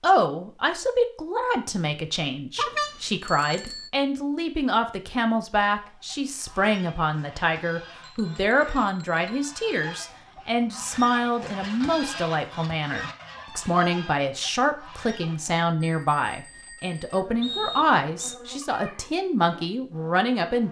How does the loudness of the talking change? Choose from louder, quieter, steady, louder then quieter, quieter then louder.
steady.